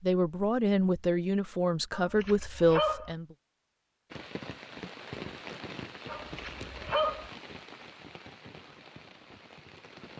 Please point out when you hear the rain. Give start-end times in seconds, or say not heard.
4.1-10.1.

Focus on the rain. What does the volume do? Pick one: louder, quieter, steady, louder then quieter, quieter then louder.
quieter.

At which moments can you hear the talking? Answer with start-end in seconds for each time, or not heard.
0.0-3.4.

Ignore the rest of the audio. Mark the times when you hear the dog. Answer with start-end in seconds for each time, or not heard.
1.9-3.1, 6.0-7.3.